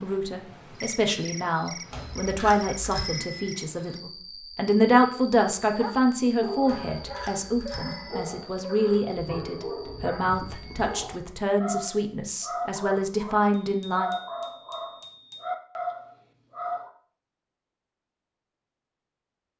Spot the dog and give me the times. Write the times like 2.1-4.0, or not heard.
5.6-16.9.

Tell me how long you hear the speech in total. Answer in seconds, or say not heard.
14 s.